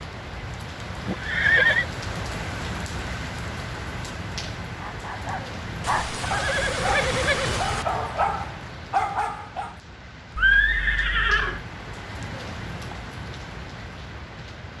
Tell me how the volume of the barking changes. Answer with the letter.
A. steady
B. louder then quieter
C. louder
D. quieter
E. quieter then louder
E.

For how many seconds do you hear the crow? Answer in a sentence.
The crow can't be heard in this clip.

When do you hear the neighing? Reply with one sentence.
The neighing can be heard from 1.1 to 1.9 s, from 5.8 to 7.8 s and from 10.3 to 11.6 s.